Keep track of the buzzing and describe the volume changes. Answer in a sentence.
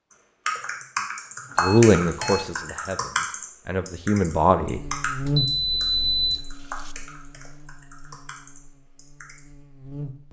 The loudness of the buzzing goes down.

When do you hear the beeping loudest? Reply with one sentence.
The loudest moment of the beeping is at 6 seconds.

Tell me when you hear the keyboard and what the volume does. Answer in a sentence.
You can hear the keyboard from 0.5 to 9.4 s, getting quieter.